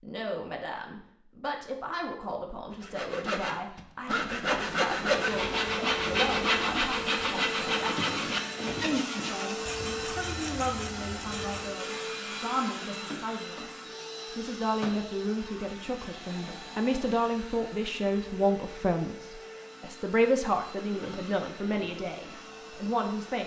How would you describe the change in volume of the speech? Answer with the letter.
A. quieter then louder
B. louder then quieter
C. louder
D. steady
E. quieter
C.